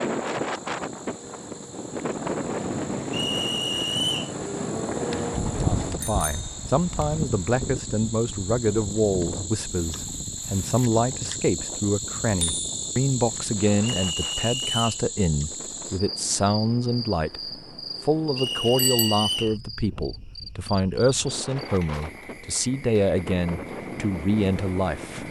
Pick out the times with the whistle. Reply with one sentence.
The whistle can be heard from 3.1 to 4.3 s, from 13.8 to 15.1 s and from 18.4 to 19.6 s.